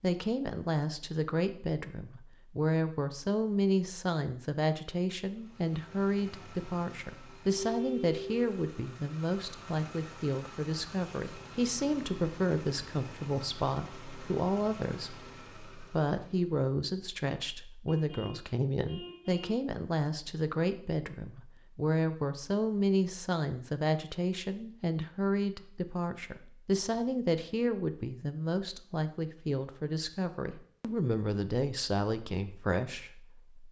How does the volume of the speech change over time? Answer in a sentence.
The loudness of the speech stays about the same.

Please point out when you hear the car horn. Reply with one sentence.
You can hear the car horn from 7.5 to 8.3 s and from 17.9 to 19.6 s.